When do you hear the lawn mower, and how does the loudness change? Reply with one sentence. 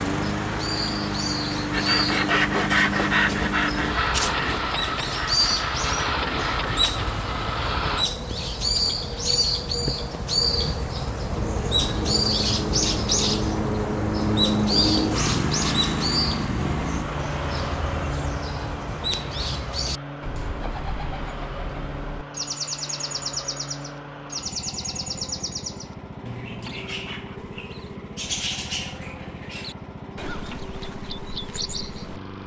You can hear the lawn mower from 0.0 to 8.1 s, at a steady volume; and from 11.3 to 32.4 s, getting quieter.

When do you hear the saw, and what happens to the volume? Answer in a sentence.
You can hear the saw from 1.7 to 6.9 s, getting quieter.